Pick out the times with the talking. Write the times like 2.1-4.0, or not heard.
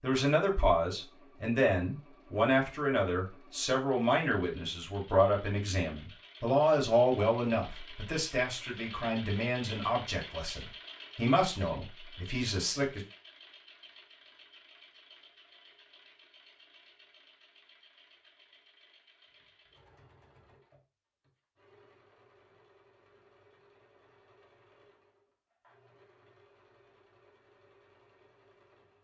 0.0-13.0.